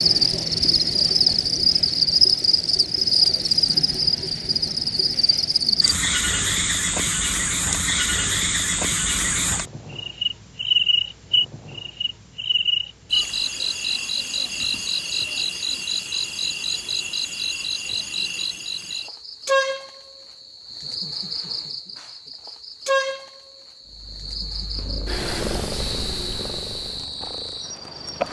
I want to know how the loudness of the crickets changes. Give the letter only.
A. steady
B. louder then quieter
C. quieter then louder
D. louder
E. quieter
E.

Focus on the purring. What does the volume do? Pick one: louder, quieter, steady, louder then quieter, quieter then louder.
louder then quieter.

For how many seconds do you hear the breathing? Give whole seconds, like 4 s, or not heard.
not heard.